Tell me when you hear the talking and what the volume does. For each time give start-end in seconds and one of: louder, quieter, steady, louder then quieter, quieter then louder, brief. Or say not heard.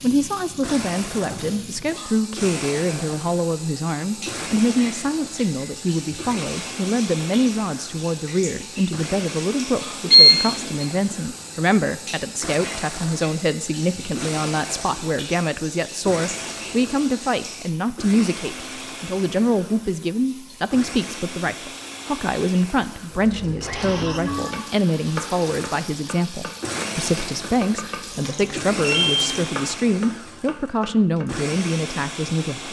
0.0-32.6 steady.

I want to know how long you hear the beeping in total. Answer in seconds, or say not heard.
2 s.